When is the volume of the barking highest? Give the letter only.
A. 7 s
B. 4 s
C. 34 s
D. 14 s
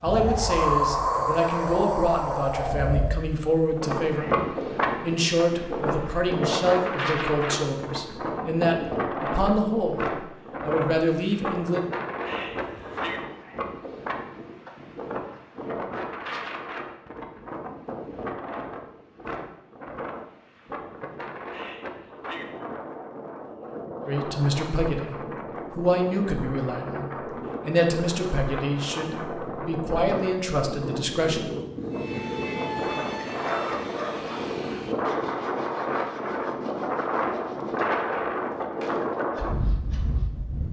C.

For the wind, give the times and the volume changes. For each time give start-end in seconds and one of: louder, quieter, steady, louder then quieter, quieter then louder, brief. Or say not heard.
0.0-40.6 quieter then louder.